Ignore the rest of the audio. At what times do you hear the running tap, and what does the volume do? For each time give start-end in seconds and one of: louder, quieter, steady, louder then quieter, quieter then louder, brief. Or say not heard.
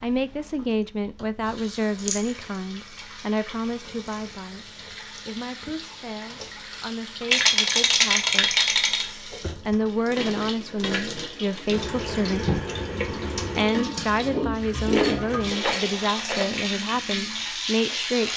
0.0-18.3 louder.